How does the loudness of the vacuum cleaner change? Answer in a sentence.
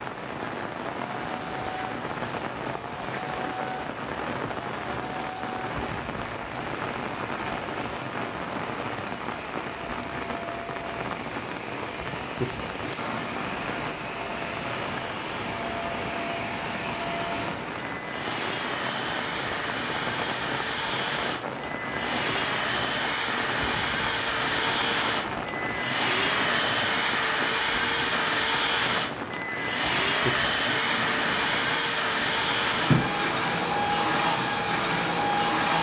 The loudness of the vacuum cleaner goes up.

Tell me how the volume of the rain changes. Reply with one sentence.
The loudness of the rain stays about the same.